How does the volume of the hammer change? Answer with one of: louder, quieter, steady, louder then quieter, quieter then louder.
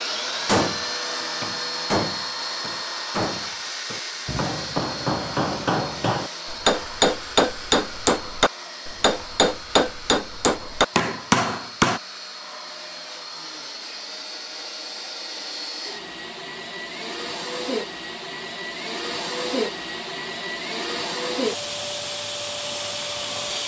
louder.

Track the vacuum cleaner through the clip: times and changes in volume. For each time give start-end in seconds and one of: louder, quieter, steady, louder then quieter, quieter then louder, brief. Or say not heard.
0.0-23.6 quieter then louder.